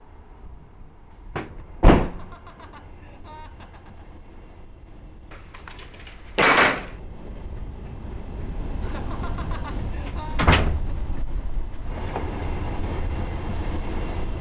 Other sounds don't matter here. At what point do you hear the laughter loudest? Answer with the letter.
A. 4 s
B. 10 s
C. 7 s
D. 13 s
B.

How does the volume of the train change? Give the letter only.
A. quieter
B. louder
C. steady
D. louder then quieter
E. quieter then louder
B.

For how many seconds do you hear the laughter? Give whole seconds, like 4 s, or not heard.
4 s.